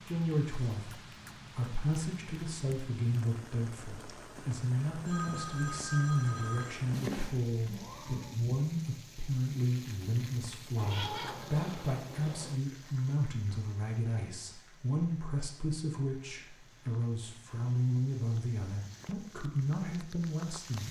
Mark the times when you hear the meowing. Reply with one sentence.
You can hear the meowing from 6.9 to 8.3 s and from 10.8 to 12.6 s.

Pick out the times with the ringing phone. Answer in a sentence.
The ringing phone can be heard from 4.3 to 6.8 s.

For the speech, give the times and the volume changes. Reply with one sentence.
You can hear the speech from 0.1 to 20.8 s, at a steady volume.